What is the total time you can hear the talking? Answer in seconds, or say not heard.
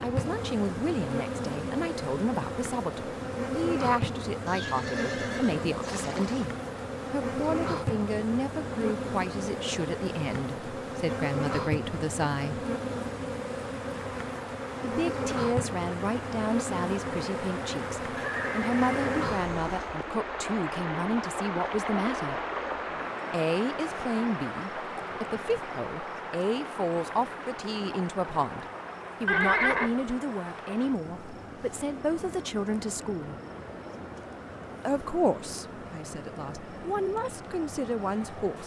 34 s.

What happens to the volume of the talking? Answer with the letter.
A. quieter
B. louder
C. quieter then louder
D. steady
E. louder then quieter
D.